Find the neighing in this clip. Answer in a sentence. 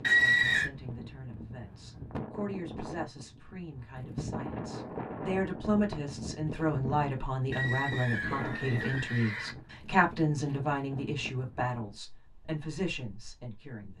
The neighing can be heard from 0.0 to 0.7 s and from 7.5 to 9.6 s.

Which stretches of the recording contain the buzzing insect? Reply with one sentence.
The buzzing insect can't be heard in this clip.